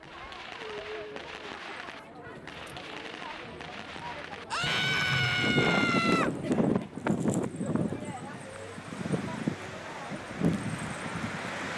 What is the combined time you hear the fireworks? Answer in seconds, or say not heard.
7 s.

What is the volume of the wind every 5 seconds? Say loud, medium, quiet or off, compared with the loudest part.
off, loud, loud.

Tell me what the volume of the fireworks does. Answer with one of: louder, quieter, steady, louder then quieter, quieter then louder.
louder.